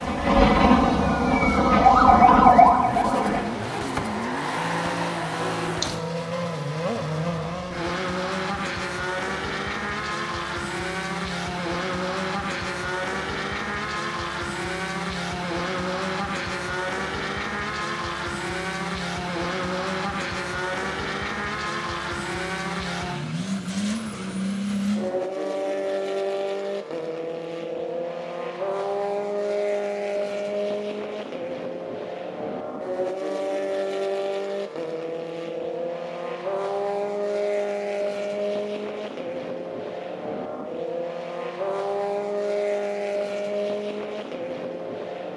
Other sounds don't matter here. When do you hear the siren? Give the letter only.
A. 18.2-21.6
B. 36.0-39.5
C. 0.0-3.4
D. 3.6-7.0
C.